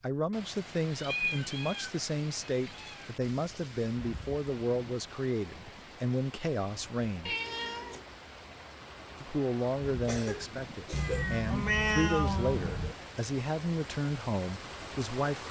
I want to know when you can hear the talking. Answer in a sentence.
The talking can be heard from 0.0 to 7.3 s and from 9.2 to 15.4 s.